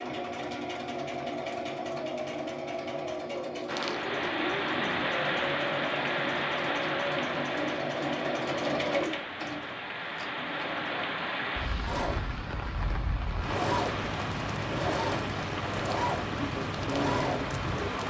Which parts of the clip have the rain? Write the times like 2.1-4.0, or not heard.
3.6-18.0.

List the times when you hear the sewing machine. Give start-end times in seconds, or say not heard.
0.0-18.0.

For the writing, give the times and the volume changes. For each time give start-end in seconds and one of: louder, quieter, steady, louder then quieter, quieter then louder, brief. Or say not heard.
not heard.